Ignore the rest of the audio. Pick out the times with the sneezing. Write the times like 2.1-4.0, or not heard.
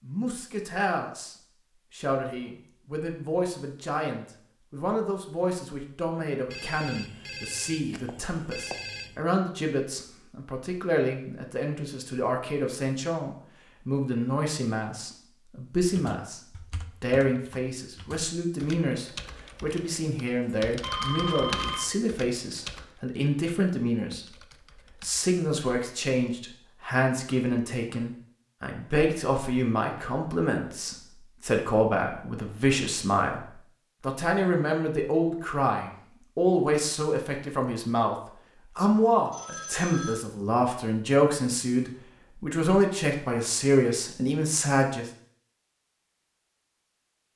not heard.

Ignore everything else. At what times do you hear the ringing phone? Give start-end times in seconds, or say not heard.
6.5-9.2, 20.8-21.9, 39.3-40.1.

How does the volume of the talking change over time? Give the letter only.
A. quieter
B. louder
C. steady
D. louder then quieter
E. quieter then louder
B.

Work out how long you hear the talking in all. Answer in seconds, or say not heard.
44 s.